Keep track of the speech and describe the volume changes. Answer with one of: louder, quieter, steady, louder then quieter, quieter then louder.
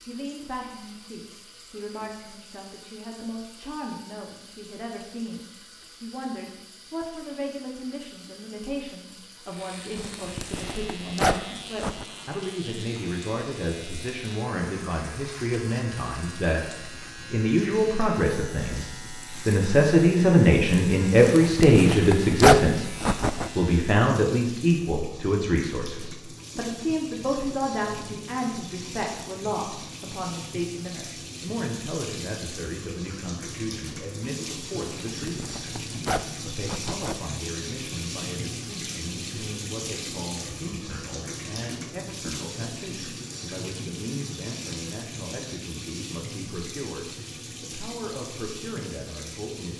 louder then quieter.